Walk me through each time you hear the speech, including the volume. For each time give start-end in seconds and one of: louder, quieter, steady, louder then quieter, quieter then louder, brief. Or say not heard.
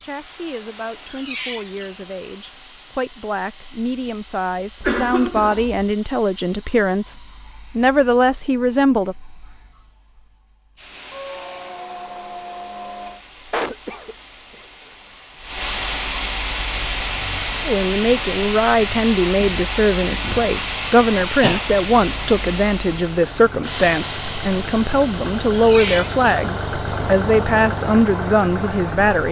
0.0-9.2 louder
17.6-29.2 steady.